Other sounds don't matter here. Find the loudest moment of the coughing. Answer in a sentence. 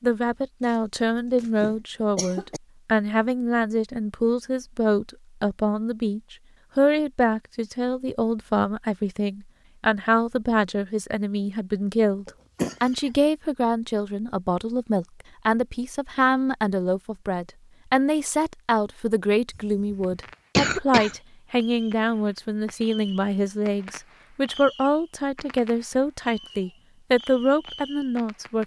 The volume of the coughing peaks at 21 seconds.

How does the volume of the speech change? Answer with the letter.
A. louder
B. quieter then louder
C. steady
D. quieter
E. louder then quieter
C.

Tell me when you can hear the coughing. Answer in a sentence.
The coughing can be heard from 1.4 to 2.6 s, from 12.2 to 13.2 s and from 19.6 to 21.1 s.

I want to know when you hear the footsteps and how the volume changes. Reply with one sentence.
The footsteps can't be heard in this clip.